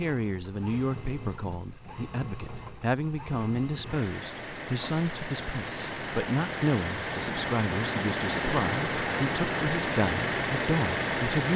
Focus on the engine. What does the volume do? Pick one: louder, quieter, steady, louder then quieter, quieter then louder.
louder.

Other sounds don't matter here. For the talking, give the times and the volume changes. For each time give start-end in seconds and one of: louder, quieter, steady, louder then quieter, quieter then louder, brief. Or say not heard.
0.0-11.5 steady.